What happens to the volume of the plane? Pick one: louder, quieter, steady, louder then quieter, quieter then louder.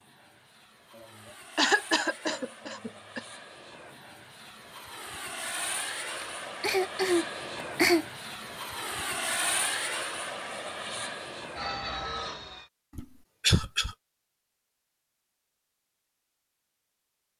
louder.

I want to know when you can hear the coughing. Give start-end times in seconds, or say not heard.
1.6-3.2, 6.2-8.1, 12.9-13.9.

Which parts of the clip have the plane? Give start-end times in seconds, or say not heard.
0.0-12.7.